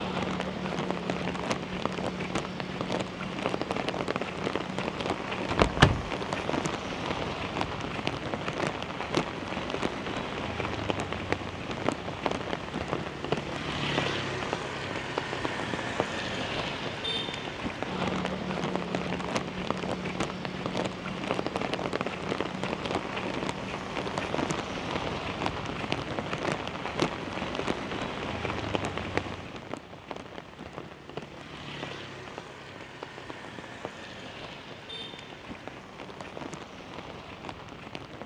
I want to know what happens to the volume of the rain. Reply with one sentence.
The volume of the rain goes down.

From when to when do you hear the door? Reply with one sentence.
You can hear the door from 5.5 to 6.1 s.